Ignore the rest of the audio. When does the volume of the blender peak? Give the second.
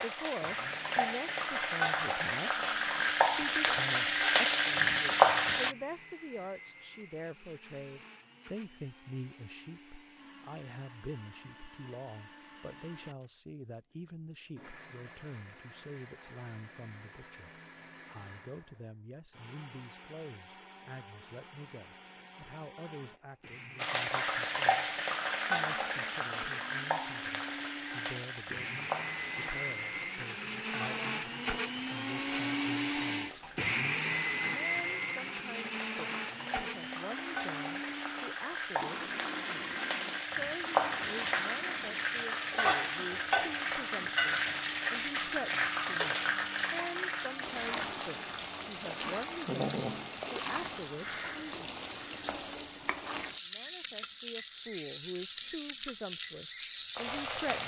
34 s.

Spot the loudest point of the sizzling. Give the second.
5 s.